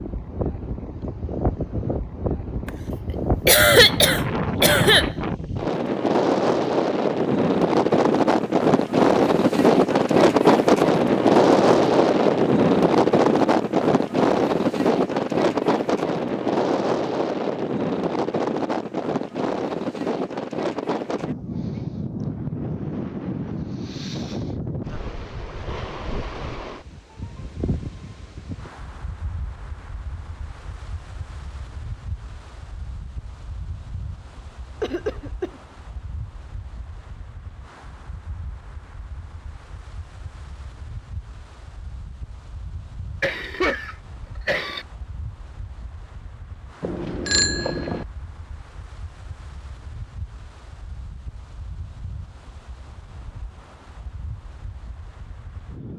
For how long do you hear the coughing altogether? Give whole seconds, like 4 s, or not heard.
4 s.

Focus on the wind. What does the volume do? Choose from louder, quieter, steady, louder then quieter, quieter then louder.
quieter.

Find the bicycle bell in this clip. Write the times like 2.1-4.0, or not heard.
46.8-48.0.